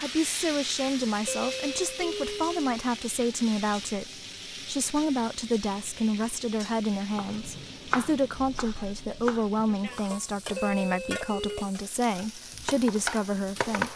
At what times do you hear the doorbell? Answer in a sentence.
You can hear the doorbell from 1.2 to 2.6 s and from 10.6 to 11.7 s.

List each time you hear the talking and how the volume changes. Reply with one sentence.
You can hear the talking from 0.0 to 13.9 s, at a steady volume.